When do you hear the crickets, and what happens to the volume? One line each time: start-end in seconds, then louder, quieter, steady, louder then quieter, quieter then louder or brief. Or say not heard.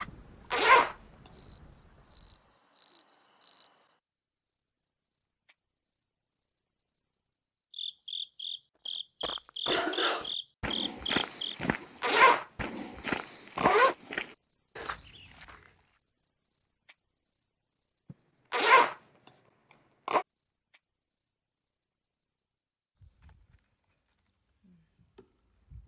0.0-25.8 louder then quieter.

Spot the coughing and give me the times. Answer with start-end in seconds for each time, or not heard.
9.7-10.3.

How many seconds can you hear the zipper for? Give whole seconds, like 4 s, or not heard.
3 s.